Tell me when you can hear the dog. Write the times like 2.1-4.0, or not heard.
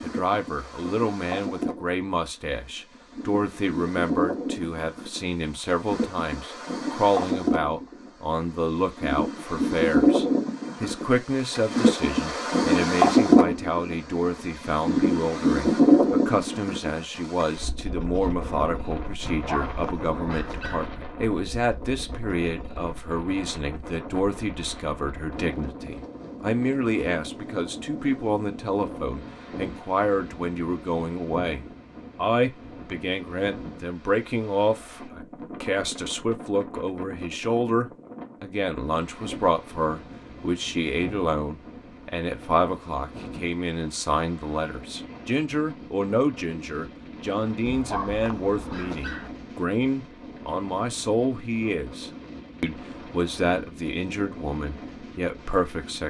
19.2-20.9, 47.6-49.3.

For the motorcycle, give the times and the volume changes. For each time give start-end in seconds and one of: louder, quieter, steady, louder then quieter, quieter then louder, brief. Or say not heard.
not heard.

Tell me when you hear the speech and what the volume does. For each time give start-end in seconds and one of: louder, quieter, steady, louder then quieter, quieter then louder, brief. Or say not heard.
0.0-56.0 steady.